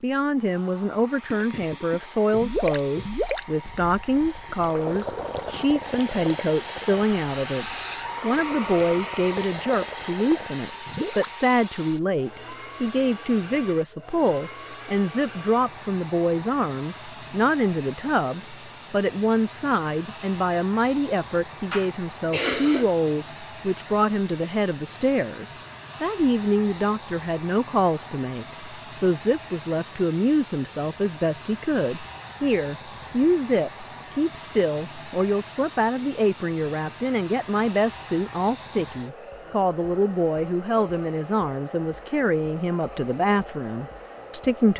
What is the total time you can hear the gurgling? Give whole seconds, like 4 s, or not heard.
10 s.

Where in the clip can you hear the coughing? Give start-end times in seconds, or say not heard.
21.7-22.9.